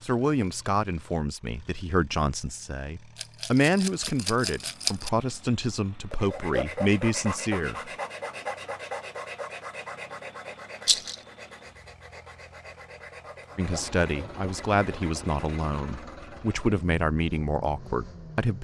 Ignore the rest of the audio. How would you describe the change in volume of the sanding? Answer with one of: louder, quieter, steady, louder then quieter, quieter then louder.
quieter.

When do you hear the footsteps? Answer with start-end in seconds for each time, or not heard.
not heard.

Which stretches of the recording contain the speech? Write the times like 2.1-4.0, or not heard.
0.0-7.9, 13.6-18.6.